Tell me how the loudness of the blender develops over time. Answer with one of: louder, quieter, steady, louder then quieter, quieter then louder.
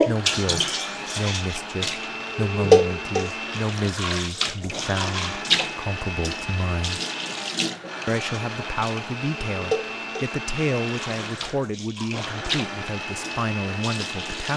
steady.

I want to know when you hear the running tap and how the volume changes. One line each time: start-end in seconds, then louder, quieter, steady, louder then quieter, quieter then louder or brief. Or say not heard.
0.0-14.5 quieter.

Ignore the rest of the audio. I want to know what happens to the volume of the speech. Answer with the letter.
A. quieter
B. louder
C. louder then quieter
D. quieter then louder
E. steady
E.